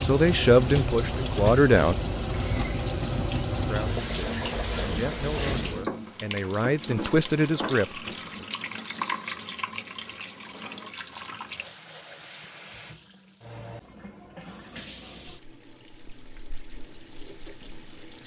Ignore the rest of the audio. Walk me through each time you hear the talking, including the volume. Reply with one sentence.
The talking can be heard briefly from 0.0 to 1.9 s; and from 3.5 to 8.4 s, getting louder.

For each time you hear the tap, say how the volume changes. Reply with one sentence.
You can hear the tap from 0.0 to 18.2 s, getting quieter.